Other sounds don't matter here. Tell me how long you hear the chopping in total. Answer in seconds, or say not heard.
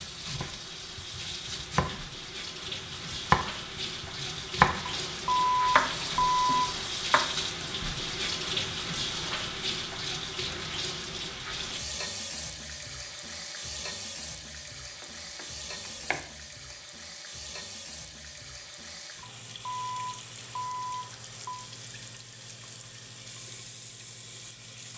7 s.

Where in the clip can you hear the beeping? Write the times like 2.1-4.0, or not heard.
4.8-7.0, 19.2-21.7.